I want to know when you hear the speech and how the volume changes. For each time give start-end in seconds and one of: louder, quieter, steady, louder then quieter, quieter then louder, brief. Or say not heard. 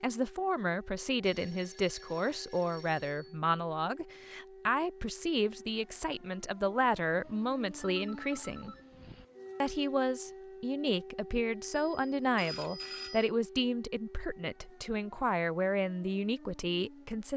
0.0-8.8 steady
9.6-17.3 steady.